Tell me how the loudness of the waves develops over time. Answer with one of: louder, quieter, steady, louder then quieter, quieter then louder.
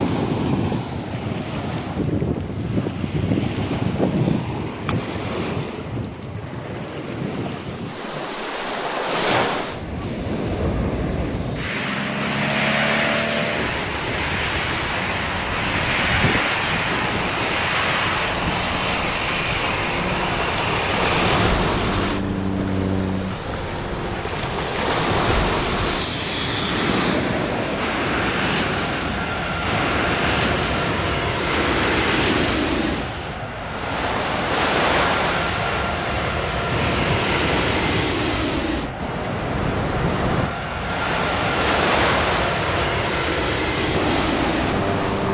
steady.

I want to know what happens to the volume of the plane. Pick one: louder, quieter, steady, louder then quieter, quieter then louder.
steady.